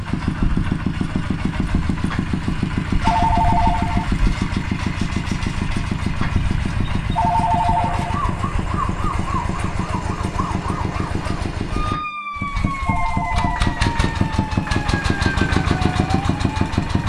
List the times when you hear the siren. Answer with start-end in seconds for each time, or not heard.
7.7-17.0.